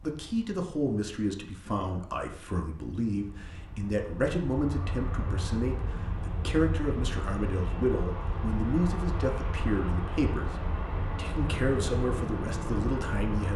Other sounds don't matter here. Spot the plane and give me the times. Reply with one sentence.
You can hear the plane from 0.0 to 13.5 s.